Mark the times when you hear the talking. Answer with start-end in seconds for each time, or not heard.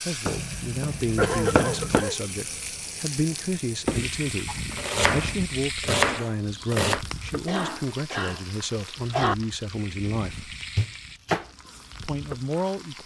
0.1-10.6, 12.0-13.0.